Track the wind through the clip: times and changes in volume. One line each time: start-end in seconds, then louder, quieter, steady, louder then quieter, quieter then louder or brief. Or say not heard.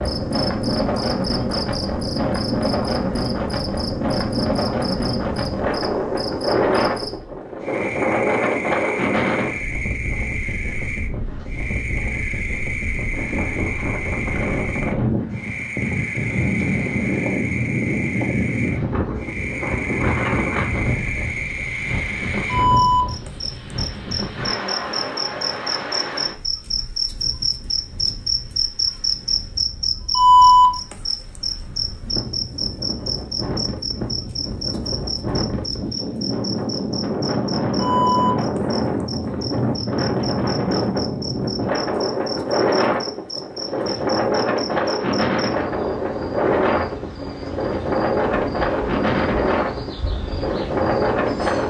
0.0-51.6 quieter then louder.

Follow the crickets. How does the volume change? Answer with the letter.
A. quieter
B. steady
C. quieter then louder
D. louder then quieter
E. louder
D.